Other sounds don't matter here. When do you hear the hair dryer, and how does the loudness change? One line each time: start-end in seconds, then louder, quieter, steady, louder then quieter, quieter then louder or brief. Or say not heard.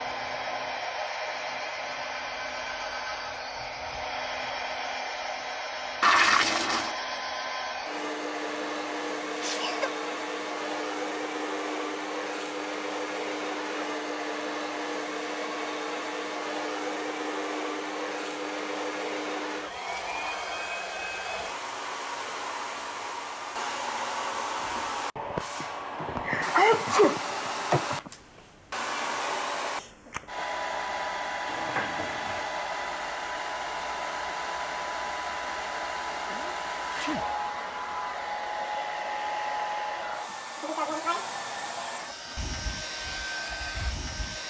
0.0-44.4 steady.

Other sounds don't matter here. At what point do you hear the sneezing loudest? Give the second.
27 s.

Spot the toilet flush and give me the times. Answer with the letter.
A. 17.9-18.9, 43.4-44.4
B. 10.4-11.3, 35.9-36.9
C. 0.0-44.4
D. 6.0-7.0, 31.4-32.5
D.